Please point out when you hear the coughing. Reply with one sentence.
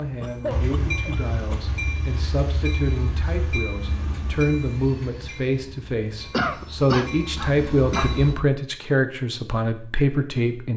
The coughing can be heard from 0.2 to 1.8 s and from 6.3 to 8.2 s.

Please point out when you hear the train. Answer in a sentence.
You can hear the train from 0.0 to 8.4 s.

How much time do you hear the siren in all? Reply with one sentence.
The siren can't be heard in this clip.